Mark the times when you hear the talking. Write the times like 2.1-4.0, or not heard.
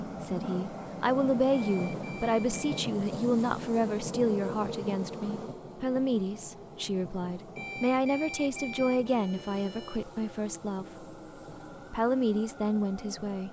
0.0-11.1, 11.9-13.4.